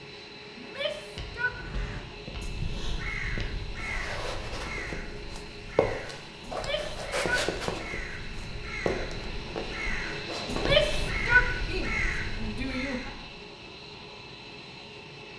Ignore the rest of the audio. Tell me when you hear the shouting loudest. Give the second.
11 s.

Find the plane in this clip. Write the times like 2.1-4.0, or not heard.
0.0-15.3.